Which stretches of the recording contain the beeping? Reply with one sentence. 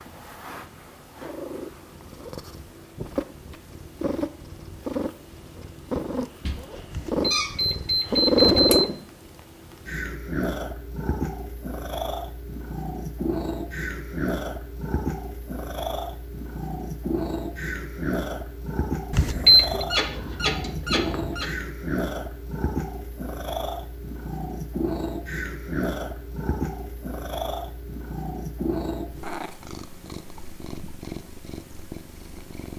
The beeping can be heard from 7.0 to 8.8 s and from 19.1 to 19.9 s.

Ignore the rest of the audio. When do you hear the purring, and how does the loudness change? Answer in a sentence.
You can hear the purring from 0.0 to 32.7 s, getting louder then quieter.